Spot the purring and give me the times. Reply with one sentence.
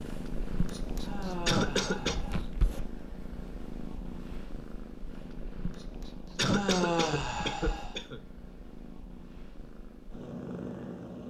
You can hear the purring from 0.0 to 11.2 s.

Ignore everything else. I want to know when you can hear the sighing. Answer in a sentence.
You can hear the sighing from 1.0 to 2.4 s and from 6.5 to 8.0 s.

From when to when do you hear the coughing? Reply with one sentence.
You can hear the coughing from 1.4 to 2.1 s and from 6.3 to 8.2 s.